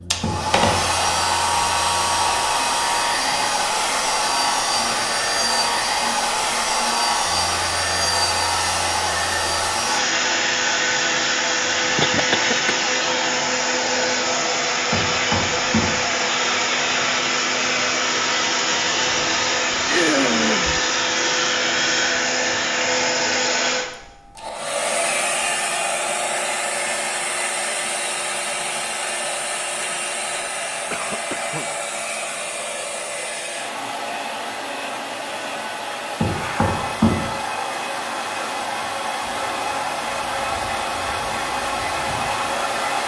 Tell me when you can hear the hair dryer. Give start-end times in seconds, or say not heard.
0.0-43.0.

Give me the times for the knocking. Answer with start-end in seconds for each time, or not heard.
0.2-0.9, 14.9-16.0, 36.2-37.4.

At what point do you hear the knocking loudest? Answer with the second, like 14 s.
37 s.